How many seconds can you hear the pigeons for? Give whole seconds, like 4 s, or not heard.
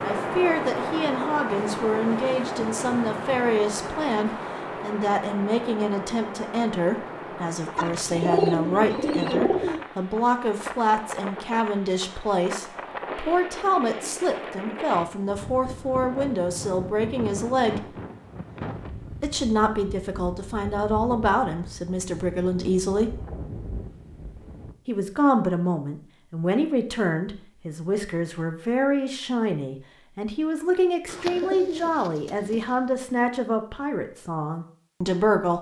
4 s.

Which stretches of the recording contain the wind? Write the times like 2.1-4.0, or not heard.
0.0-24.8.